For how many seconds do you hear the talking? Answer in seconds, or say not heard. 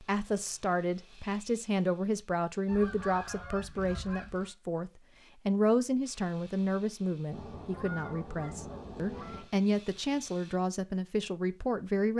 12 s.